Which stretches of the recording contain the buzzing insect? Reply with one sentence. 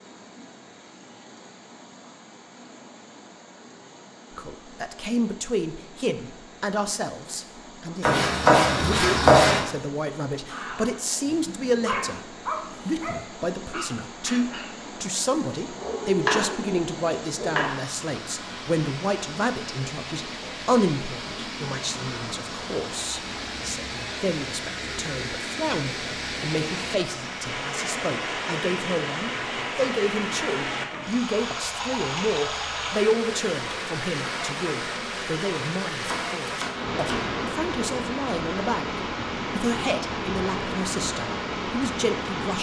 The buzzing insect can't be heard in this clip.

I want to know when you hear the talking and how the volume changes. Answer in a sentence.
You can hear the talking from 4.3 to 42.5 s, at a steady volume.